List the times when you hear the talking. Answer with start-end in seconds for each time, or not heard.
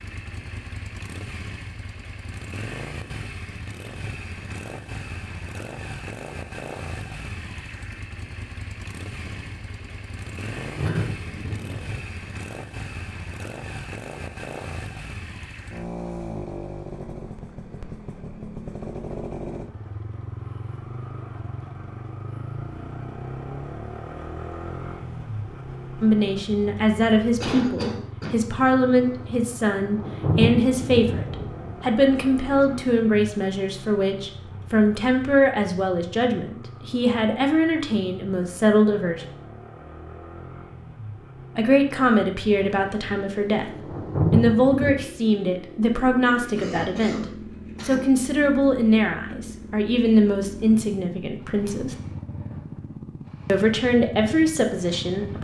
26.0-39.2, 41.5-43.7, 44.3-52.0, 53.5-55.3.